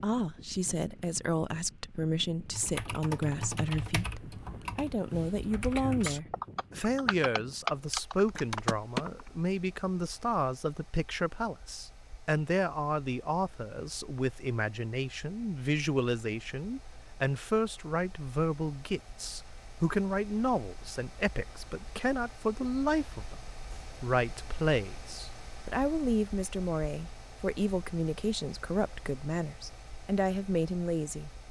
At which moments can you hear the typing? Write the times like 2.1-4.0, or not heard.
2.5-9.3.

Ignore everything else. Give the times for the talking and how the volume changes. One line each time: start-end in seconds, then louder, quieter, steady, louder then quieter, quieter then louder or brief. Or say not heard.
0.0-31.3 steady.